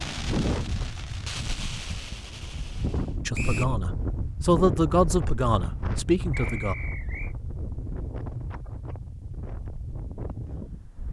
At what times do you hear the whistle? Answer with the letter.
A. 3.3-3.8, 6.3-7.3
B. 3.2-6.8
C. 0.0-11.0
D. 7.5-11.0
A.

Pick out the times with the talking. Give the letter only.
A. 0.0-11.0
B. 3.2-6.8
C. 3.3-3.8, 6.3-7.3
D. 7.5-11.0
B.